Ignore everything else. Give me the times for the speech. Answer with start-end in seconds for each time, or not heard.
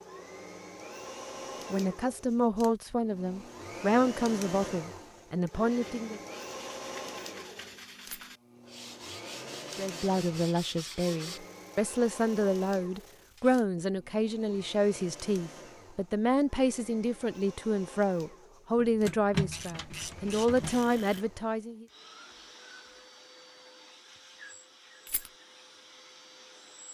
1.7-6.2, 9.8-21.9.